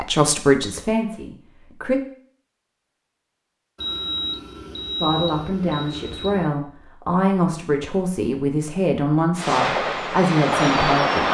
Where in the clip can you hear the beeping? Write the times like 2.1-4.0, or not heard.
3.8-6.5.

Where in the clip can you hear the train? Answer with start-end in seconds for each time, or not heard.
9.3-11.2.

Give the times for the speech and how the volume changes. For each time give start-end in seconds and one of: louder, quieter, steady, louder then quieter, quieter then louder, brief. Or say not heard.
0.0-2.0 brief
5.0-11.2 steady.